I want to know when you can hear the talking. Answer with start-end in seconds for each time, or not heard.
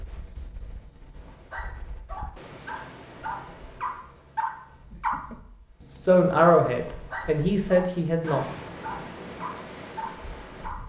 6.0-8.5.